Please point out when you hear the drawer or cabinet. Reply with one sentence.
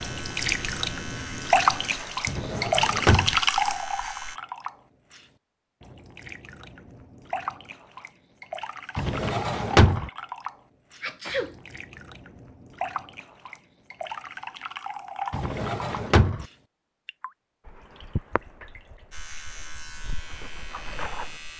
The drawer or cabinet can be heard from 2.2 to 3.4 s, from 8.9 to 10.1 s and from 15.3 to 16.4 s.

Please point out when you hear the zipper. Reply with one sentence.
The zipper can't be heard in this clip.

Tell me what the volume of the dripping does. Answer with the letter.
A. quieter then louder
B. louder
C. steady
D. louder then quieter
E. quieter
E.